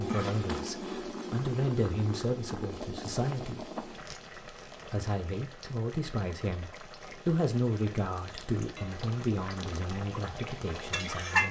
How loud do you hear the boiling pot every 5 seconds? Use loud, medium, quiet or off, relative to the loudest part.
medium, quiet, loud.